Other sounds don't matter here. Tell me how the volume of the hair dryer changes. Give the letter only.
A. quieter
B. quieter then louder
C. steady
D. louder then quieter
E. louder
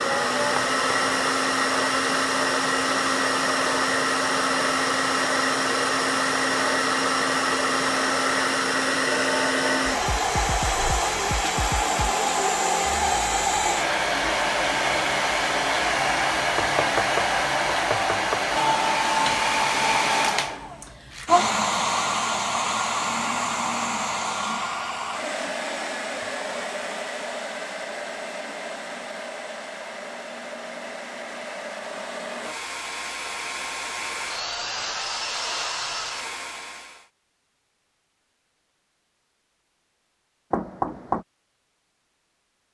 A.